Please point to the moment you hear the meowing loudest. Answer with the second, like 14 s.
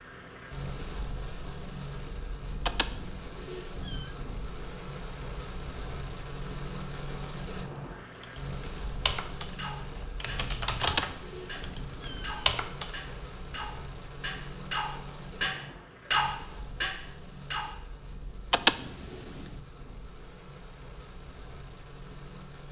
19 s.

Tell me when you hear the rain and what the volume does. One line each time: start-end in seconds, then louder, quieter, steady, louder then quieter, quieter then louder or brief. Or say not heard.
0.0-22.6 quieter.